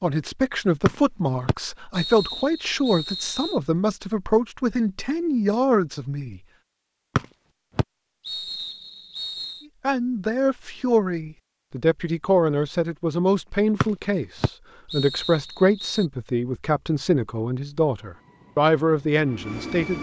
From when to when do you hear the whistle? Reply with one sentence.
You can hear the whistle from 0.8 to 3.6 s, from 7.2 to 9.7 s and from 13.8 to 16.1 s.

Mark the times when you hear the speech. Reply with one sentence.
The speech can be heard from 0.0 to 6.4 s and from 9.8 to 19.9 s.